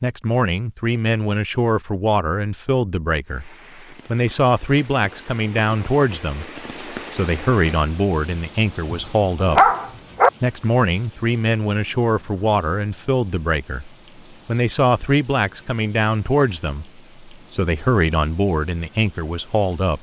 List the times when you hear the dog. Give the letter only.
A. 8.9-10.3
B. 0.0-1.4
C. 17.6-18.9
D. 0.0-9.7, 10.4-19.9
A.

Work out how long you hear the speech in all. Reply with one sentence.
You can hear the speech for 19 seconds altogether.